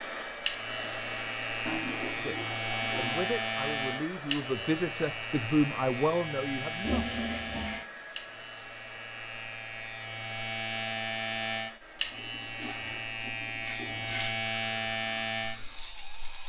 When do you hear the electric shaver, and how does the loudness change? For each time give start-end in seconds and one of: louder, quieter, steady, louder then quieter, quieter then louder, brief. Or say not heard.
0.2-16.4 quieter then louder.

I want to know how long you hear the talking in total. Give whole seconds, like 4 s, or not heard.
5 s.